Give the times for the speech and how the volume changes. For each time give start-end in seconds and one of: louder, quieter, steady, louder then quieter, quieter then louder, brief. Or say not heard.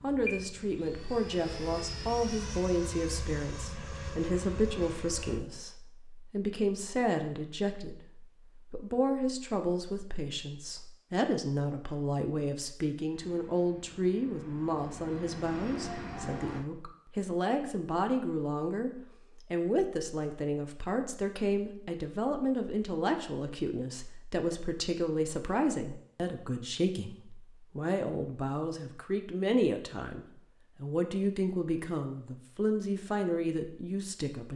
0.0-34.5 steady.